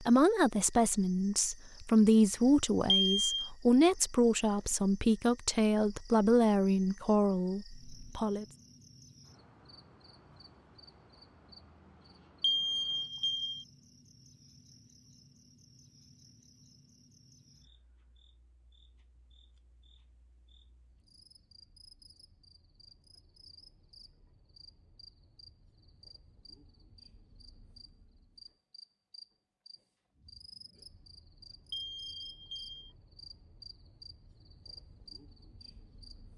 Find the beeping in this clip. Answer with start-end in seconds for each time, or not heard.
2.9-3.5, 12.4-13.7, 31.7-32.9.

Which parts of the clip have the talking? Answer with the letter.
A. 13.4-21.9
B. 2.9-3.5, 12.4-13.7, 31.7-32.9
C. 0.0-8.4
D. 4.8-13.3
C.